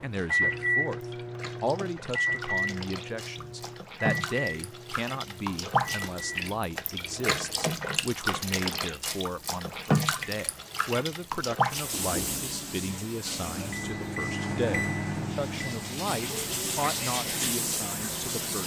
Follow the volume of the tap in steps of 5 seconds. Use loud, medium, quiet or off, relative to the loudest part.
medium, loud, loud, loud.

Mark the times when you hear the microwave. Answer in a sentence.
You can hear the microwave from 0.0 to 6.4 s and from 13.4 to 18.6 s.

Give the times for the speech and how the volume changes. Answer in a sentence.
You can hear the speech from 0.0 to 18.6 s, at a steady volume.